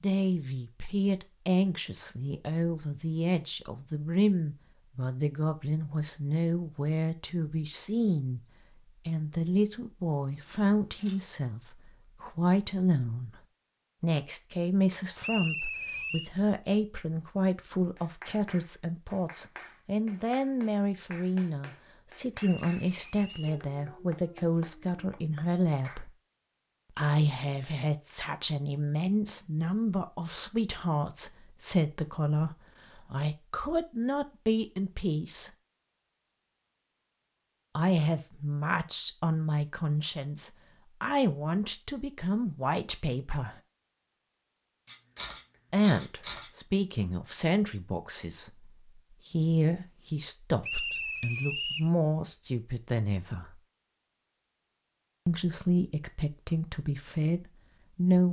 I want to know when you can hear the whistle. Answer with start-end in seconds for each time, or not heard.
15.2-16.3, 22.4-23.6, 50.6-51.9.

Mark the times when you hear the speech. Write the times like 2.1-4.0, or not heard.
0.0-13.4, 14.0-26.1, 26.9-35.5, 37.8-43.5, 45.7-53.6, 55.2-58.2.